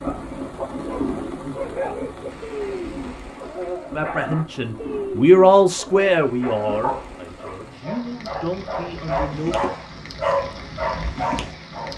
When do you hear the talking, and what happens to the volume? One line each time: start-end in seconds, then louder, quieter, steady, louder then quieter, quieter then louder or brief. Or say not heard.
4.0-9.6 louder then quieter.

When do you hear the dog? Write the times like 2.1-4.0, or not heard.
0.0-11.9.